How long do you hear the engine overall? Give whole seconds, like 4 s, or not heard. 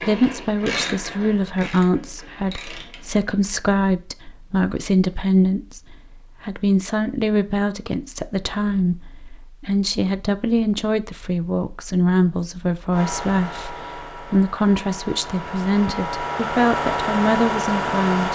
5 s.